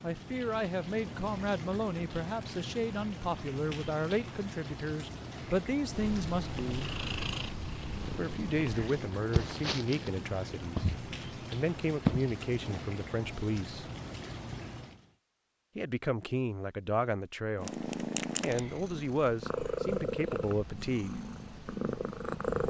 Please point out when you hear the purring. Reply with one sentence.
The purring can be heard from 5.8 to 12.8 s and from 17.6 to 22.6 s.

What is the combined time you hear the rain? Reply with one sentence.
The rain can be heard for 15 seconds in total.